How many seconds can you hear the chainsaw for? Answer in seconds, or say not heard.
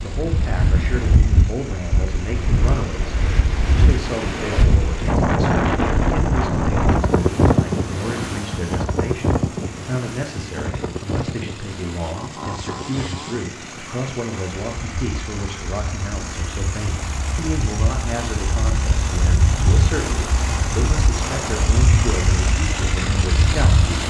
24 s.